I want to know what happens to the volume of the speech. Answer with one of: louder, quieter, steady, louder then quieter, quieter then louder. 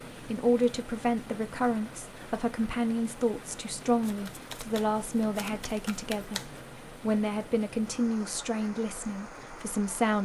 steady.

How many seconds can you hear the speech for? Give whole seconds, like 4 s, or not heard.
10 s.